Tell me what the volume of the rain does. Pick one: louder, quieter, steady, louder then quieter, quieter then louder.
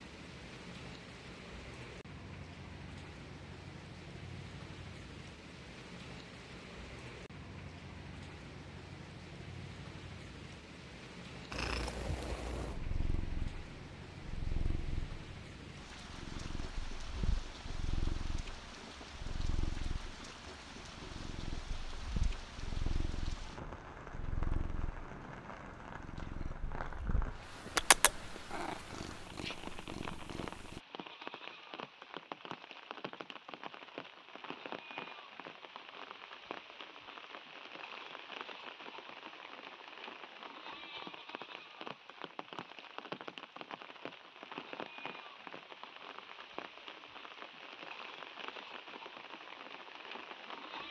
steady.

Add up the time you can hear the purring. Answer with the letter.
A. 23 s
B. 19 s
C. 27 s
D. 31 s
B.